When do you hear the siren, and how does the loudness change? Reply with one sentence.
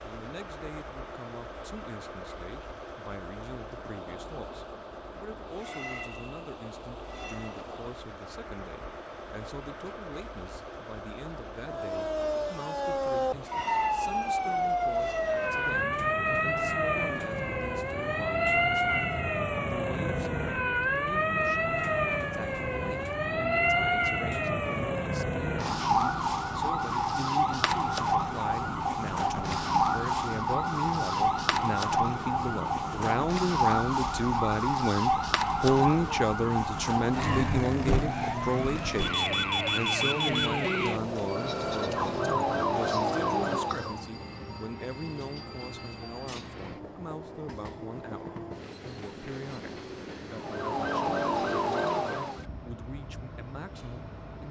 You can hear the siren from 11.7 to 44.0 s, at a steady volume; and briefly from 50.4 to 52.5 s.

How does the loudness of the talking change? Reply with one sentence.
The loudness of the talking goes up, then down.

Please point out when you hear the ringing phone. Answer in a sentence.
You can't hear the ringing phone here.